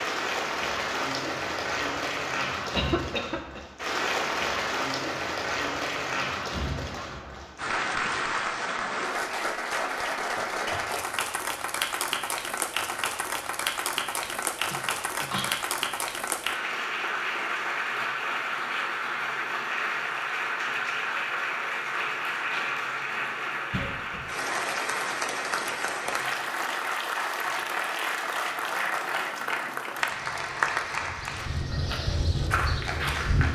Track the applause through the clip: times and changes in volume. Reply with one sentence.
You can hear the applause from 0.0 to 33.4 s, at a steady volume.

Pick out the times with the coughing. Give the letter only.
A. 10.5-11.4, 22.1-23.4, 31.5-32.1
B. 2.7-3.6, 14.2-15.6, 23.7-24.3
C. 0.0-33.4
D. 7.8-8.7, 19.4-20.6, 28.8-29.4
B.